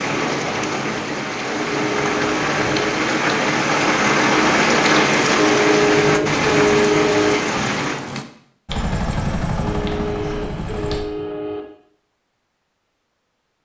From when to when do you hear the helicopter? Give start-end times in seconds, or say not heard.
8.7-11.1.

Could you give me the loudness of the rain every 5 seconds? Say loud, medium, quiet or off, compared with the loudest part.
loud, loud, off.